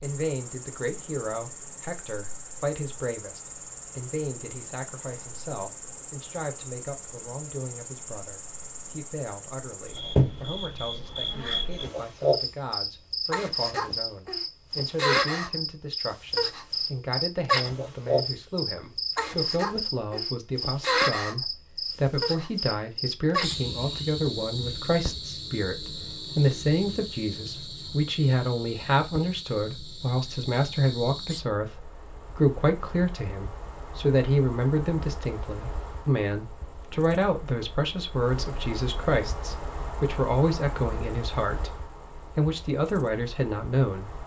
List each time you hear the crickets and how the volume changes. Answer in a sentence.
The crickets can be heard from 0.0 to 44.2 s, getting louder then quieter.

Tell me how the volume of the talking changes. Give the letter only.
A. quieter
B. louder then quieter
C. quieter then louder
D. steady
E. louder
E.